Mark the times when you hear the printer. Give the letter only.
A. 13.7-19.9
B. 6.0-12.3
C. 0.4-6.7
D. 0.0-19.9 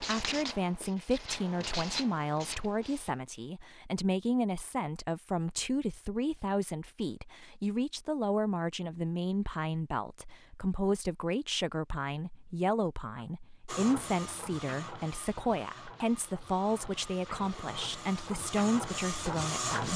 A.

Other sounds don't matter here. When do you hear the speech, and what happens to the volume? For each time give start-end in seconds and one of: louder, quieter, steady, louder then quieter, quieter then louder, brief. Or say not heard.
0.0-19.9 steady.